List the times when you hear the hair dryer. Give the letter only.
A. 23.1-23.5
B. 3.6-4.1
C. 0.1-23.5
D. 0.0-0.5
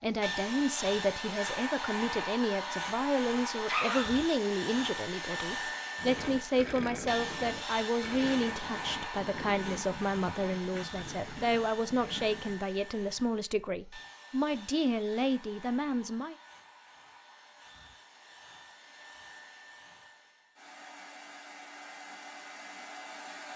C.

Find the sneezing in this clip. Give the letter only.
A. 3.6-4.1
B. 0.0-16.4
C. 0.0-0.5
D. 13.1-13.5
A.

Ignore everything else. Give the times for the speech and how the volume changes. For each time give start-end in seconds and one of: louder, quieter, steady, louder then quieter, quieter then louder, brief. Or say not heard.
0.0-16.4 steady.